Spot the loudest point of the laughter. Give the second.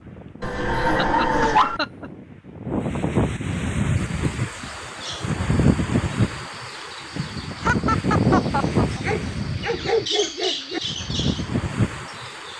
8 s.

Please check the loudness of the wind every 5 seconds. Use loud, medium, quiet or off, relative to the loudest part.
loud, loud, medium.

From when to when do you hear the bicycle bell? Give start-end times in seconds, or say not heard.
not heard.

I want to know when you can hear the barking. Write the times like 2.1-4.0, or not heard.
0.4-1.8, 9.0-10.8.